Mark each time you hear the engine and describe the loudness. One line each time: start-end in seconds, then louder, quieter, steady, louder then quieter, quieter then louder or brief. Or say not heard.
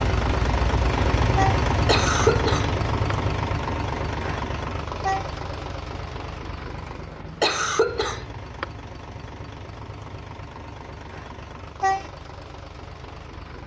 0.0-13.6 quieter.